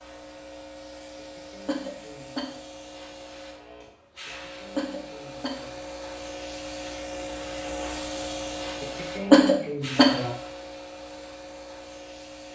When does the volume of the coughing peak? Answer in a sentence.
The volume of the coughing peaks at 9 seconds.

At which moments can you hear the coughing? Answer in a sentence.
You can hear the coughing from 1.1 to 2.5 s, from 4.2 to 5.8 s and from 8.8 to 10.3 s.